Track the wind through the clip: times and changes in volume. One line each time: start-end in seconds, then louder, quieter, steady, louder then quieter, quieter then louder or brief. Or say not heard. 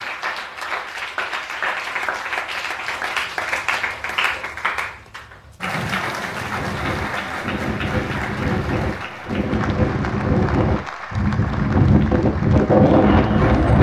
6.4-13.7 louder.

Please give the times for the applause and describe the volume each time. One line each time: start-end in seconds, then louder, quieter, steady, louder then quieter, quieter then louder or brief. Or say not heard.
0.0-13.6 quieter.